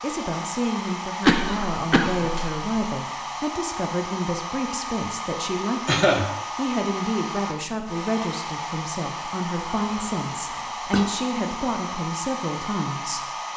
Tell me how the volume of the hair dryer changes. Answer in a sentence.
The volume of the hair dryer stays about the same.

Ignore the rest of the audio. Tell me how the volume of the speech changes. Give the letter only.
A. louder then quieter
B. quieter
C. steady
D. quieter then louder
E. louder
C.